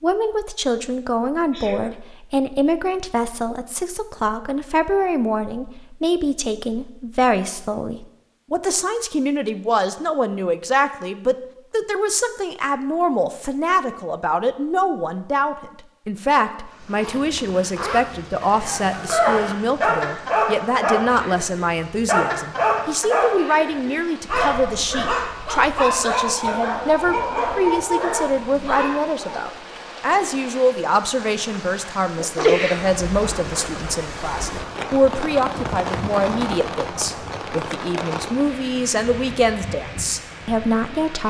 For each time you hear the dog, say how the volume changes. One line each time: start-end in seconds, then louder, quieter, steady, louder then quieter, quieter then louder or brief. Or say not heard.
18.6-29.0 steady.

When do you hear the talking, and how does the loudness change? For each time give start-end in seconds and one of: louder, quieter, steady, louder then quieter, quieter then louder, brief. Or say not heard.
0.0-41.2 steady.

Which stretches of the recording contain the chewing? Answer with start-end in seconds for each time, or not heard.
not heard.